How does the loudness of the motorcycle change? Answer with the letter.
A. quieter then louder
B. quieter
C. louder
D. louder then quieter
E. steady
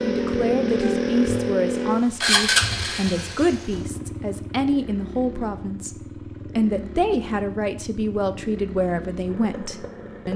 B.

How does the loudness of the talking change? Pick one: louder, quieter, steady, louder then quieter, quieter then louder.
steady.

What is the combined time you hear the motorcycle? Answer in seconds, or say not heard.
10 s.